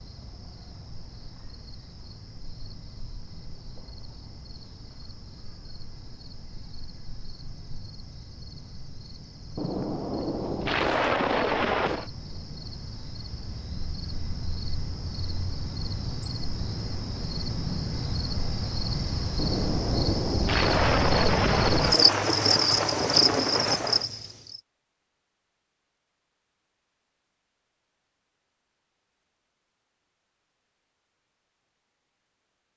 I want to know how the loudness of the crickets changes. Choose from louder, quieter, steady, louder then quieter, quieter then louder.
louder.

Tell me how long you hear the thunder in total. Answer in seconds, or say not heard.
7 s.